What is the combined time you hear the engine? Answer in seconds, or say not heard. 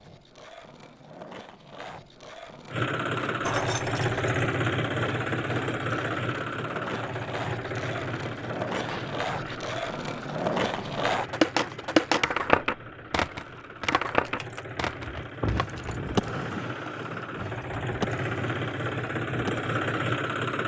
18 s.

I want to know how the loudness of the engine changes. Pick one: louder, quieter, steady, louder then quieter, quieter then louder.
quieter then louder.